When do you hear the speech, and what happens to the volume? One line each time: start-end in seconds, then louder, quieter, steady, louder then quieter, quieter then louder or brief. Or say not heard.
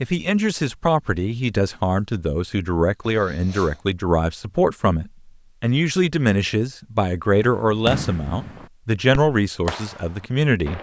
0.0-10.7 steady.